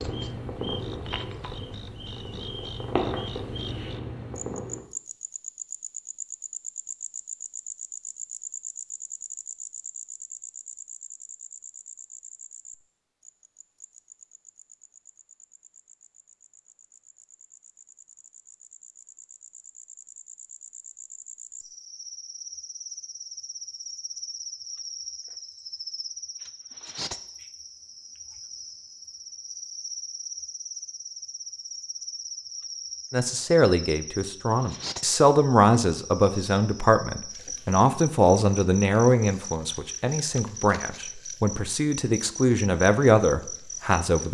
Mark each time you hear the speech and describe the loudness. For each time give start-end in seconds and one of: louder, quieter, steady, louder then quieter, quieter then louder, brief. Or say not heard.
33.1-44.2 quieter then louder.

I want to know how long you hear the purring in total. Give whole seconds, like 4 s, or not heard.
5 s.